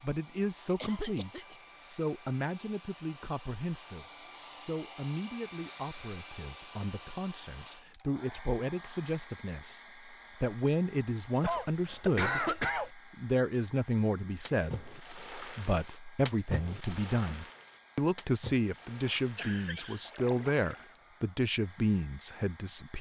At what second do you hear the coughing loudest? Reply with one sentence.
The loudest moment of the coughing is at 12 seconds.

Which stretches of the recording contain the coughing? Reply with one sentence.
You can hear the coughing from 0.8 to 1.6 s, from 11.4 to 12.9 s and from 19.4 to 20.0 s.